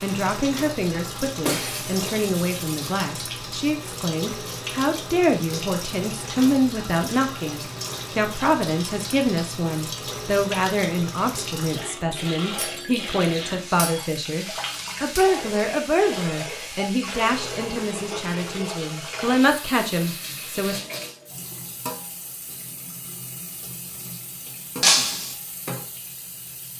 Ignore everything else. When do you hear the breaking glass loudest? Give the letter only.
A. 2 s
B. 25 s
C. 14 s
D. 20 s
B.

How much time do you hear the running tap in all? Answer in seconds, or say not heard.
27 s.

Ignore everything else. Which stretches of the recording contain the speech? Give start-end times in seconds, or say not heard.
0.0-20.8.